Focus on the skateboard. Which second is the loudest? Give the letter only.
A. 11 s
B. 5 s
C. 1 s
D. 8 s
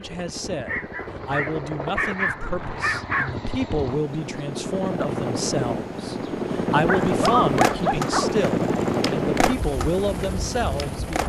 D.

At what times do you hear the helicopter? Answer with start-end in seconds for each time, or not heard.
0.0-11.2.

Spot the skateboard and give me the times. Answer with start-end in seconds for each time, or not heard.
7.1-11.2.